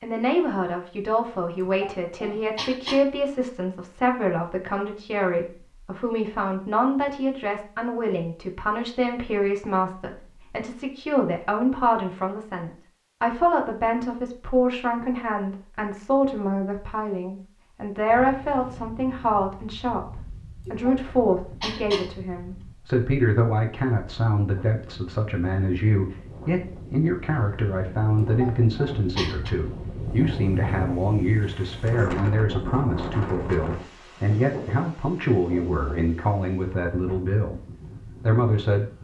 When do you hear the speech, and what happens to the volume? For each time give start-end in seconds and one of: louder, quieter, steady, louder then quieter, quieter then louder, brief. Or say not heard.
0.0-38.9 steady.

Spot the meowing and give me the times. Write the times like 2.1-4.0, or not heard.
not heard.